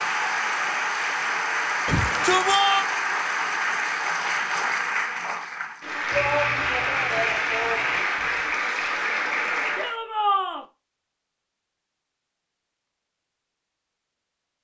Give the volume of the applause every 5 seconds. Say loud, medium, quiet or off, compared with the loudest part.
loud, loud, off.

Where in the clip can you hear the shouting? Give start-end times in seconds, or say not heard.
1.9-2.9, 6.1-8.1, 9.8-10.7.